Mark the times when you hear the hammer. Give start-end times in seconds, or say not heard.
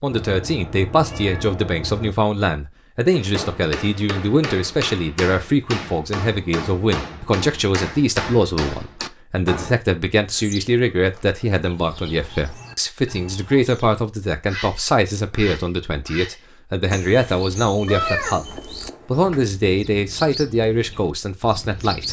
3.1-9.8.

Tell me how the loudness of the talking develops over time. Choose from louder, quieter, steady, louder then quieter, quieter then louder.
steady.